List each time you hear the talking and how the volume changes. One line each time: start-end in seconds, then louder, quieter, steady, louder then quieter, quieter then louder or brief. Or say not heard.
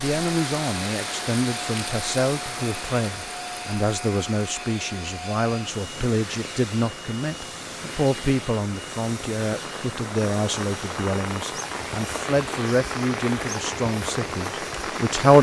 0.0-15.3 steady.